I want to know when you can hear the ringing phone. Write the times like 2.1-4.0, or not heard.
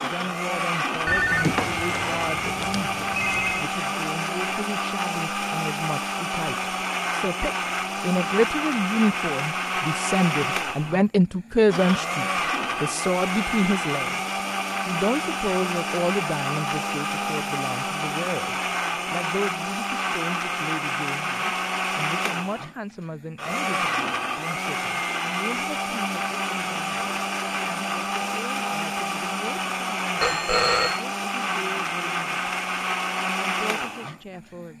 1.1-3.7, 30.2-31.0.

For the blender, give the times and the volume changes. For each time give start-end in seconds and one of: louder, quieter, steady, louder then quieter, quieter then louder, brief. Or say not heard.
0.0-34.7 steady.